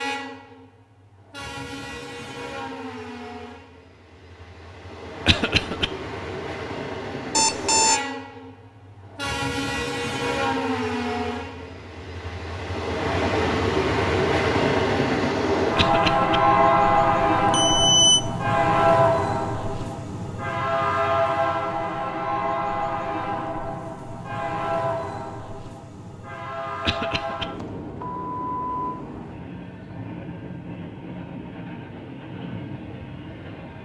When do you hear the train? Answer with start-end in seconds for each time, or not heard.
0.0-33.8.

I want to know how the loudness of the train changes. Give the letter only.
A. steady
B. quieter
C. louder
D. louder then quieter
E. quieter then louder
D.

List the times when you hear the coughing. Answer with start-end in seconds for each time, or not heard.
5.2-5.9, 15.8-16.4, 26.9-27.4.